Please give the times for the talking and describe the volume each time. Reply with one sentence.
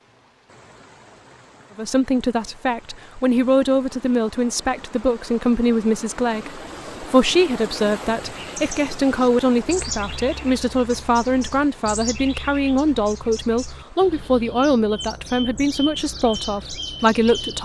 You can hear the talking from 1.8 to 17.5 s, at a steady volume.